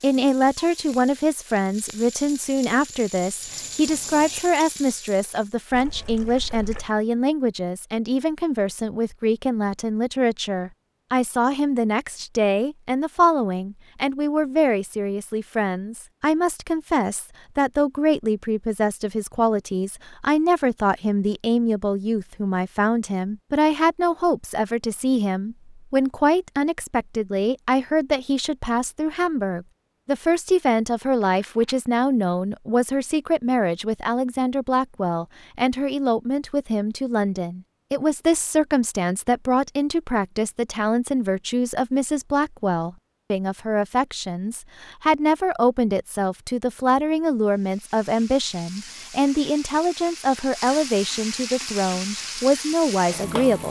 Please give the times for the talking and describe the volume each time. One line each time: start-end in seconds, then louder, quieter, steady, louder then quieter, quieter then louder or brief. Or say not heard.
0.0-53.6 steady.